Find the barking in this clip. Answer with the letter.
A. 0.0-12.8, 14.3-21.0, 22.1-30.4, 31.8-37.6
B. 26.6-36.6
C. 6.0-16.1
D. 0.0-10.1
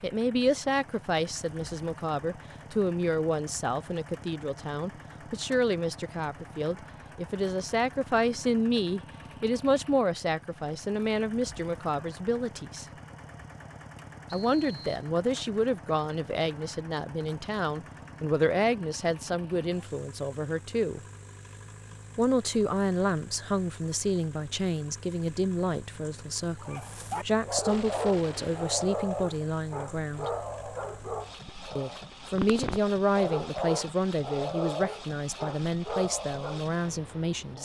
B.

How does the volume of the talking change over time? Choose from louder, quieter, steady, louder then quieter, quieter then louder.
steady.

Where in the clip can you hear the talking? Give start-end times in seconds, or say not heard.
0.0-12.8, 14.3-21.0, 22.1-30.4, 31.8-37.6.